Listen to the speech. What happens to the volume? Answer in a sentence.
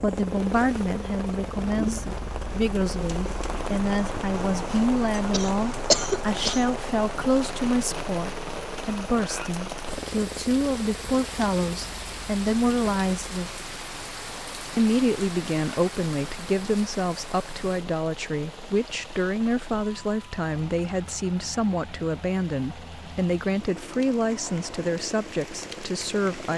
The loudness of the speech stays about the same.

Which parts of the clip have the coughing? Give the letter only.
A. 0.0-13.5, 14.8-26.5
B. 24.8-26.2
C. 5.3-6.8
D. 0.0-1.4
C.